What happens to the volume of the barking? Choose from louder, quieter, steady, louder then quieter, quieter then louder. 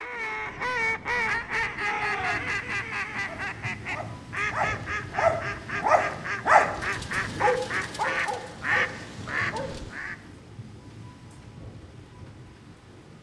louder then quieter.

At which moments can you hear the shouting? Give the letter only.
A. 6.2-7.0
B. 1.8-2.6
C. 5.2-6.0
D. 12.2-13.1
B.